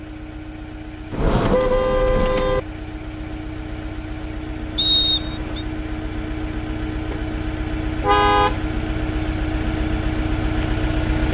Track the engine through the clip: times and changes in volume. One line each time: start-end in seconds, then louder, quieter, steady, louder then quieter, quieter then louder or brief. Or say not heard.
0.0-11.2 louder.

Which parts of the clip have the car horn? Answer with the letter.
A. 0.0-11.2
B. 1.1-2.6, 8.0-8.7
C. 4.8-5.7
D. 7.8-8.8
B.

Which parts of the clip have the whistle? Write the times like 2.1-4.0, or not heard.
4.8-5.7.